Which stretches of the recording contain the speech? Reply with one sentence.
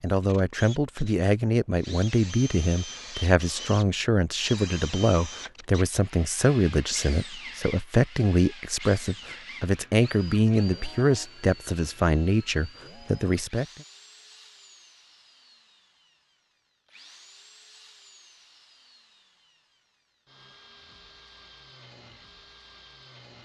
The speech can be heard from 0.0 to 13.7 s.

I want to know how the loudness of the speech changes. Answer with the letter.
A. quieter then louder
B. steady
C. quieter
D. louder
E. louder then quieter
B.